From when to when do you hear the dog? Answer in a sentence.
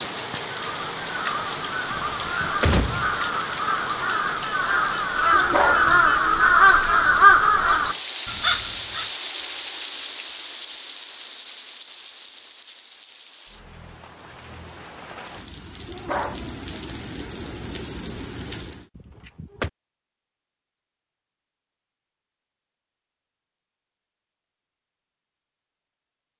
The dog can be heard from 5.3 to 6.5 s and from 15.8 to 16.8 s.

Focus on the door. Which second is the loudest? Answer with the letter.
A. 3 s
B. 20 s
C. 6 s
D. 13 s
A.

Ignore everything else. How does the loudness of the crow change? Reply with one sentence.
The volume of the crow goes up.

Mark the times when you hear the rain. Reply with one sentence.
The rain can be heard from 0.0 to 18.9 s.